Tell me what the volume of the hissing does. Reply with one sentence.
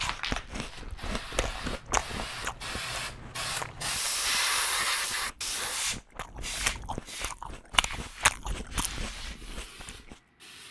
The loudness of the hissing goes up, then down.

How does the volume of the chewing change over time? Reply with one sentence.
The loudness of the chewing goes down, then up.